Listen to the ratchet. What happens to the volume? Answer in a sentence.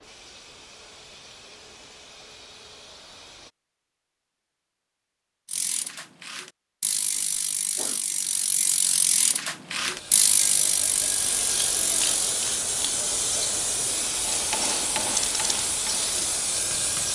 The volume of the ratchet goes up.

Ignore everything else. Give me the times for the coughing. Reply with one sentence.
The coughing can be heard from 7.2 to 8.0 s.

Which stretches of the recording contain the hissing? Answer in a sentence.
You can hear the hissing from 0.0 to 3.5 s and from 9.8 to 17.1 s.